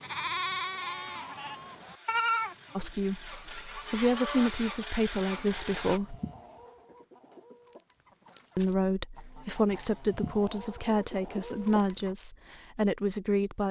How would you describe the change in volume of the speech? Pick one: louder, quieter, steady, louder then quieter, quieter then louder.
steady.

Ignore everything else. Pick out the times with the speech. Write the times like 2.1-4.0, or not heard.
2.8-6.2, 8.6-13.6.